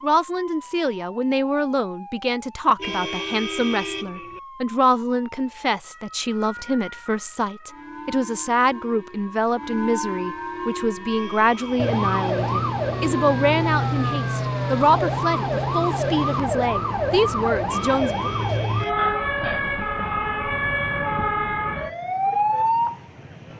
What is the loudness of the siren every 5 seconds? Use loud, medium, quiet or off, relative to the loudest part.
quiet, quiet, loud, loud, loud.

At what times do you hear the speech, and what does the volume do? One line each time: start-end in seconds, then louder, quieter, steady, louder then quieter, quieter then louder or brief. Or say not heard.
0.0-18.3 steady.